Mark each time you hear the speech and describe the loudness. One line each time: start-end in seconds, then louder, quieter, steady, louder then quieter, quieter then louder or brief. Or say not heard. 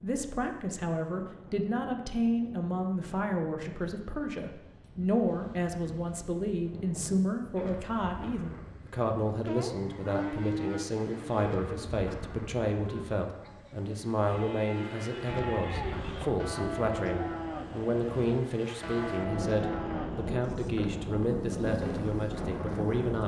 0.0-23.2 steady.